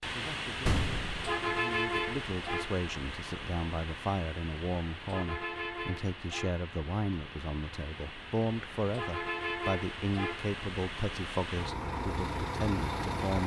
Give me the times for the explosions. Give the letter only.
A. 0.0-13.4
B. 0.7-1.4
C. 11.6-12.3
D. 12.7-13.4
B.